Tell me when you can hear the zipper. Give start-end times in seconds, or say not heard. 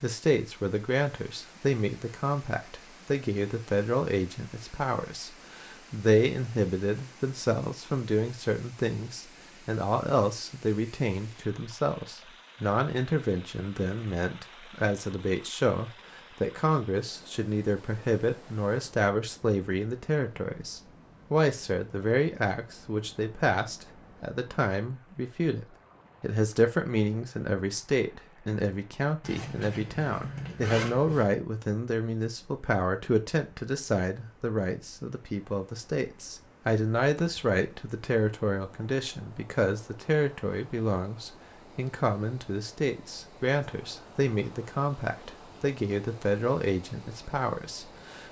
29.2-31.2.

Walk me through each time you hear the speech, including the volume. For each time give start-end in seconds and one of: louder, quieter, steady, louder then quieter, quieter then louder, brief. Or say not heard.
0.0-48.2 steady.